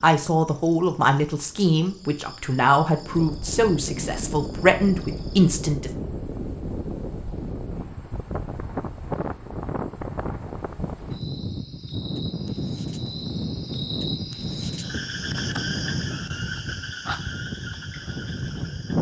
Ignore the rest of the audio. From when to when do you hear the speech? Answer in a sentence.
You can hear the speech from 0.0 to 5.9 s.